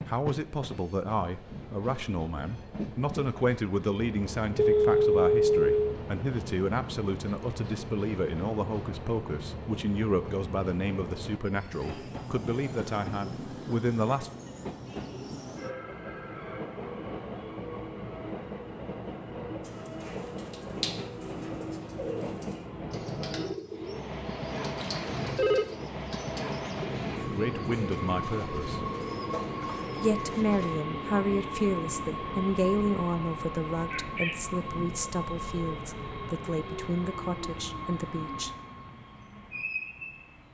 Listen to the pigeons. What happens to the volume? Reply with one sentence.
The volume of the pigeons stays about the same.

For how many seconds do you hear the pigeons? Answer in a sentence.
You can hear the pigeons for 11 seconds altogether.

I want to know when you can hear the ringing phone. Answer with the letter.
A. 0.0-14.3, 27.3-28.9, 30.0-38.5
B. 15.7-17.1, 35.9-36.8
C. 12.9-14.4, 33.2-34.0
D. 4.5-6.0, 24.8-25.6
D.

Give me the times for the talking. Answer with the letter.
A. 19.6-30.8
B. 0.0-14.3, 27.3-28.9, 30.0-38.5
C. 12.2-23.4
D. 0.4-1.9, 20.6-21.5
B.